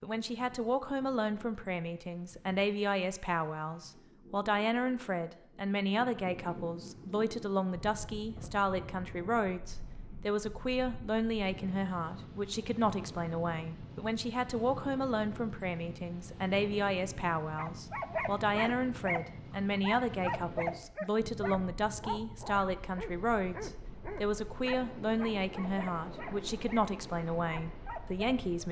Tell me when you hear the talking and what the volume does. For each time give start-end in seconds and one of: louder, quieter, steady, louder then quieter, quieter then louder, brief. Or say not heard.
0.0-28.6 steady.